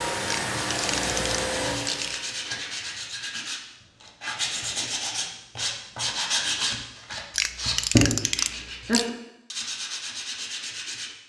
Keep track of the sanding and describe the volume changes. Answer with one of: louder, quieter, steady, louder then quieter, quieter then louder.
louder then quieter.